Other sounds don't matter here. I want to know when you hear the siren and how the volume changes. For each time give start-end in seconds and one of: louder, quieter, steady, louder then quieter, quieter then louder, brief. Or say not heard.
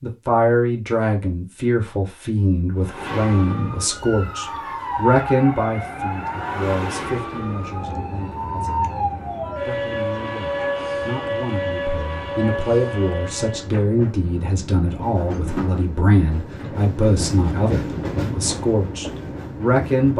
2.6-13.7 steady.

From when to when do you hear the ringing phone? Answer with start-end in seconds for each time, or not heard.
not heard.